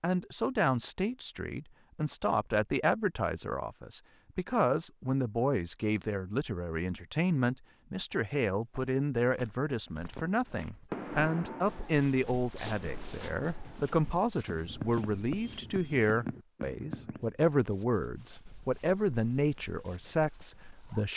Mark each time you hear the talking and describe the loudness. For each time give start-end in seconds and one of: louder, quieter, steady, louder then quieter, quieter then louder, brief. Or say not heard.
0.0-21.1 steady.